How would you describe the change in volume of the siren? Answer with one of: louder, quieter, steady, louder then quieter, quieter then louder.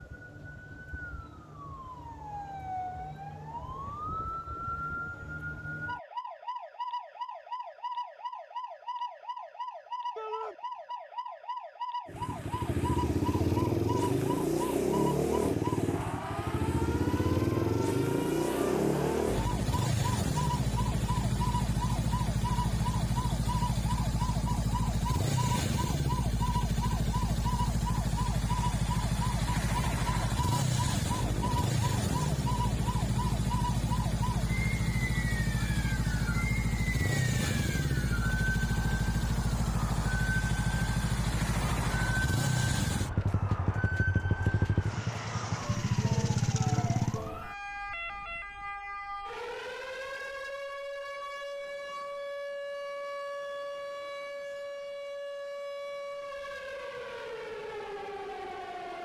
steady.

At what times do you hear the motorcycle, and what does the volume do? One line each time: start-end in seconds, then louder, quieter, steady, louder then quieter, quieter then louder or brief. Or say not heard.
12.1-47.3 steady.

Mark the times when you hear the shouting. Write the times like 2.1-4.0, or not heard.
10.2-10.6, 46.5-47.0.